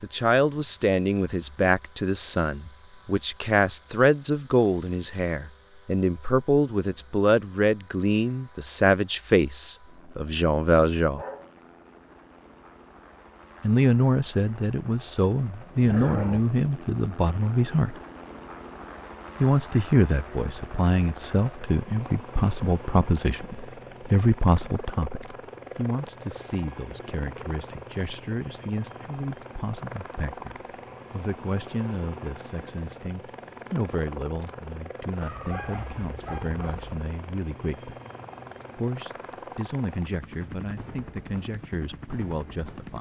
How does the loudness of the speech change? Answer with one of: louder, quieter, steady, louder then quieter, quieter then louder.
quieter.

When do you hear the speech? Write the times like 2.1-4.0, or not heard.
0.0-11.2, 13.6-17.9, 19.4-38.0, 38.8-42.9.